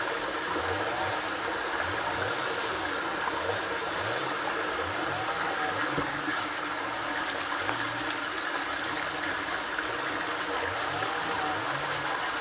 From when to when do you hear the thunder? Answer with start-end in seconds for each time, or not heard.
not heard.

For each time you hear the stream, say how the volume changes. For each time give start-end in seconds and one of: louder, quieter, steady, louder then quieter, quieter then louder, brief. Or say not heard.
0.0-12.3 steady.